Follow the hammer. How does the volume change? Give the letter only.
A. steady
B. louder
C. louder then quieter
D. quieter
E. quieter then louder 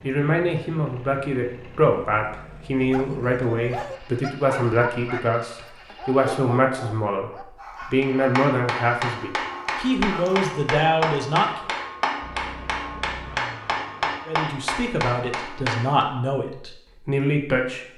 A.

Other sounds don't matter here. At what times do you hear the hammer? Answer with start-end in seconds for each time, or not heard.
8.0-16.1.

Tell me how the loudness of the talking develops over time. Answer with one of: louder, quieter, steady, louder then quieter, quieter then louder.
steady.